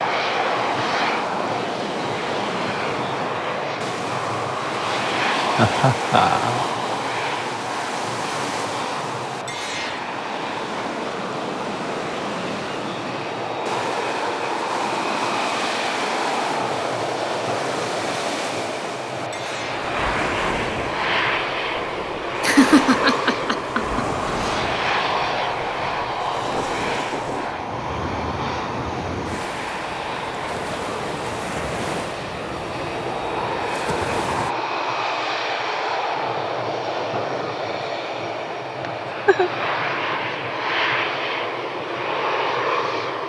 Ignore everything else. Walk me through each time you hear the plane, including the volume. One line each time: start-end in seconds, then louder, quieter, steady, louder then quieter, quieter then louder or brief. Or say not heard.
0.0-43.2 steady.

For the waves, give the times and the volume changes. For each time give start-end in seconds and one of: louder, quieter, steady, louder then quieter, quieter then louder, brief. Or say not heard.
0.0-34.5 steady.